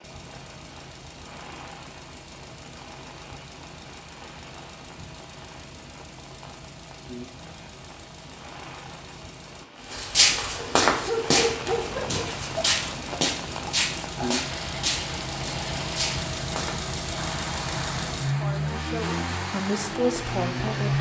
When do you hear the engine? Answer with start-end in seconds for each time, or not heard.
0.0-9.7, 11.6-20.9.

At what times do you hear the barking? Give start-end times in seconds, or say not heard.
10.6-12.3.